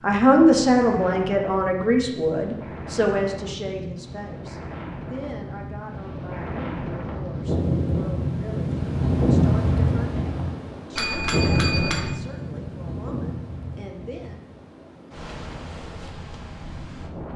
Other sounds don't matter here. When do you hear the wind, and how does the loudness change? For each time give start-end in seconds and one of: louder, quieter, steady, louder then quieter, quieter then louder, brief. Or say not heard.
0.0-17.3 louder then quieter.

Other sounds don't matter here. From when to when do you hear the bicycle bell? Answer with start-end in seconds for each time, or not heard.
10.9-12.2.